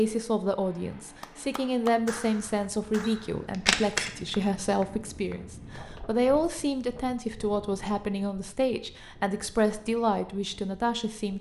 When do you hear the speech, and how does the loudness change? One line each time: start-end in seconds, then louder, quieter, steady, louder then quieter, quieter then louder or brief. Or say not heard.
0.0-11.3 steady.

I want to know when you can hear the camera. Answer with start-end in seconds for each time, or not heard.
3.0-4.1.